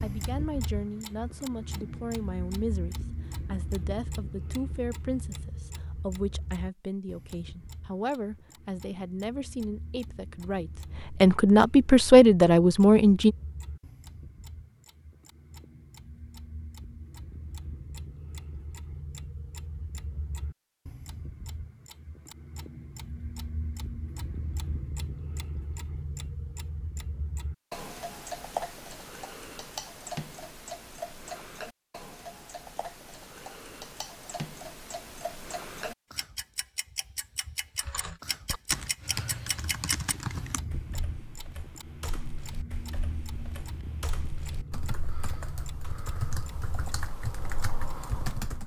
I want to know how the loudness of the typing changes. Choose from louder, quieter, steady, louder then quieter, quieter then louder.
quieter then louder.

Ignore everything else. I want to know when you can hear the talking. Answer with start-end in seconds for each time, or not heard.
0.0-13.3.